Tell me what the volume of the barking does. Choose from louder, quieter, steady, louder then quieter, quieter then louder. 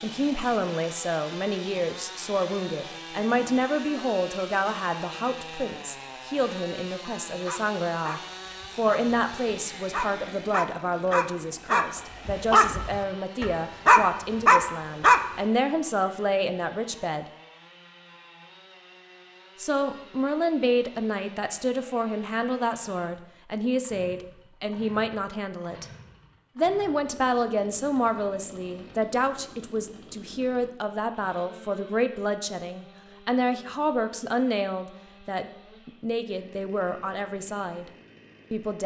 louder.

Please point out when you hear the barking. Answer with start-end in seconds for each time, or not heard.
7.5-15.2.